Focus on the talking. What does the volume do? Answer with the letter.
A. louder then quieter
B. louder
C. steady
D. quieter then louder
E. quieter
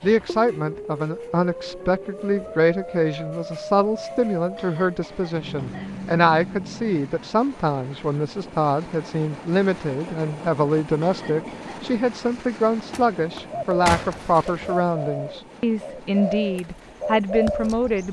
C.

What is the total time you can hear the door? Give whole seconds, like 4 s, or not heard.
2 s.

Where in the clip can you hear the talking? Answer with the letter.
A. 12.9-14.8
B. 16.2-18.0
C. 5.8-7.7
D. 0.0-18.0
D.